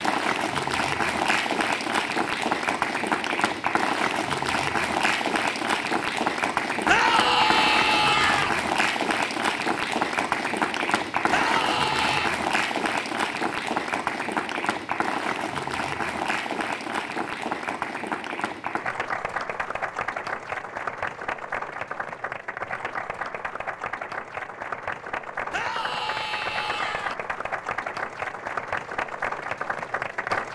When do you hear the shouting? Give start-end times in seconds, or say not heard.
6.8-8.5, 11.3-12.3, 25.5-27.1.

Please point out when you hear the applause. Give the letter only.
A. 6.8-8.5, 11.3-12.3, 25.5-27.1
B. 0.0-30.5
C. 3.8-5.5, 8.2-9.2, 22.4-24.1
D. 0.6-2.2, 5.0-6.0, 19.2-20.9
B.